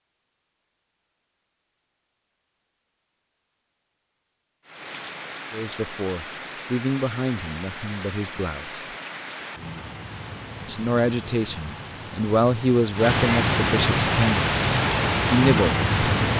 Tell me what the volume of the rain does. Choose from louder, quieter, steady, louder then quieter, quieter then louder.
louder.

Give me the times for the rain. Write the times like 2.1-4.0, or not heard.
4.7-16.3.